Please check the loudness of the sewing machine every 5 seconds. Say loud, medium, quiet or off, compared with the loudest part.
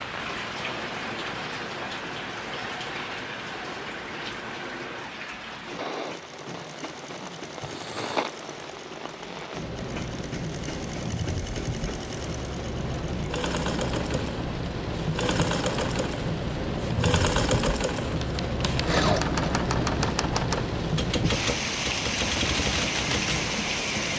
quiet, quiet, medium, loud, off.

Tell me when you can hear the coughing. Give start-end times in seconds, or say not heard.
7.6-8.3.